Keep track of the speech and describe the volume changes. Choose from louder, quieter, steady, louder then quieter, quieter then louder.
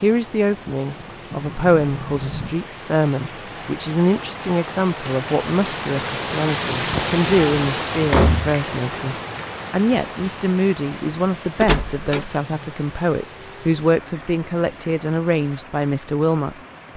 steady.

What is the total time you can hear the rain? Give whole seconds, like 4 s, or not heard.
17 s.